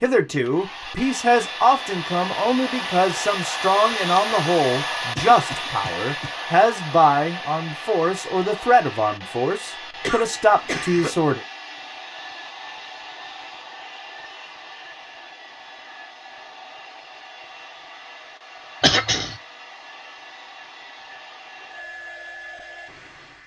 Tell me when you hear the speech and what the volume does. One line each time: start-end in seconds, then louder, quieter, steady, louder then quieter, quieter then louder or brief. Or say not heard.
0.0-11.4 steady.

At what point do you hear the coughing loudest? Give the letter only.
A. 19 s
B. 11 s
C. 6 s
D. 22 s
A.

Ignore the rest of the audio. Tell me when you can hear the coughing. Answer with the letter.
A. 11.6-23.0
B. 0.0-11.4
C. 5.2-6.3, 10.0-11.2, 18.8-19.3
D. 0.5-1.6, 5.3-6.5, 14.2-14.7
C.